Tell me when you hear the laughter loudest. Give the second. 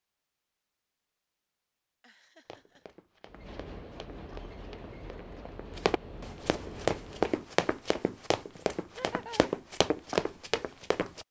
9 s.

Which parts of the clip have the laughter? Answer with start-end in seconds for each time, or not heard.
2.0-2.9, 8.9-9.6.